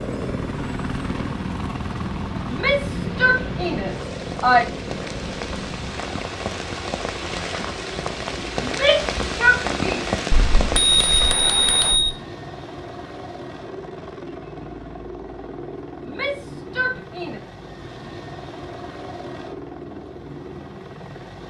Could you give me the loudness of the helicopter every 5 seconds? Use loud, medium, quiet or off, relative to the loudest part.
loud, medium, medium, medium, medium.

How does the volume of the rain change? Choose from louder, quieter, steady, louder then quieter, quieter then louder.
louder.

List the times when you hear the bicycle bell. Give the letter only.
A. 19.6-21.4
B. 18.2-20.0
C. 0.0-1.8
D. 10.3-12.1
D.